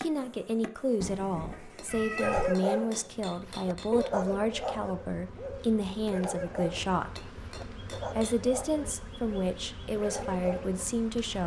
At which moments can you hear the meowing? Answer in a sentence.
You can hear the meowing from 1.0 to 2.5 s.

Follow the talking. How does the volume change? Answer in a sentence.
The loudness of the talking stays about the same.